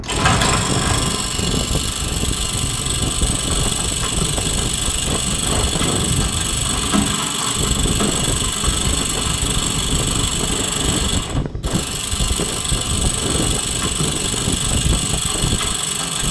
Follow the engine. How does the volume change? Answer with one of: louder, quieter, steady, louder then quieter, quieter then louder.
steady.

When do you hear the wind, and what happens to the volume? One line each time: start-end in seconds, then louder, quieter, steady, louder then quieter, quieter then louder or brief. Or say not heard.
0.0-16.2 steady.